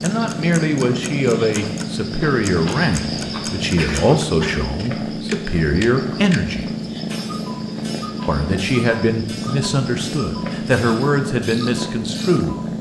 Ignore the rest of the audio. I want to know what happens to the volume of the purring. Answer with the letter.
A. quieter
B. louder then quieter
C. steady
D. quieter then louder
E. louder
C.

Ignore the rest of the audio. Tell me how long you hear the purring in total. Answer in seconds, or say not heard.
13 s.